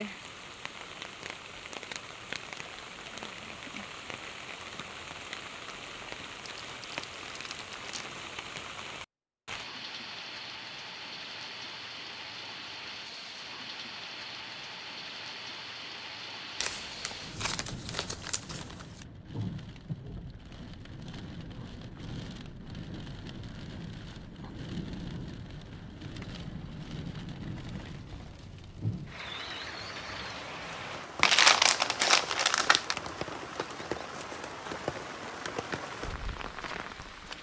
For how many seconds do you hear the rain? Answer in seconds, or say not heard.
37 s.